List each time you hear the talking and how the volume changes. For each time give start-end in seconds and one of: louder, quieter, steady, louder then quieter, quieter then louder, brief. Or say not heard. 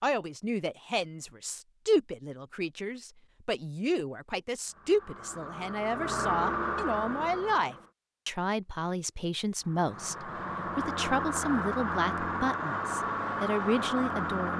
0.0-14.5 steady.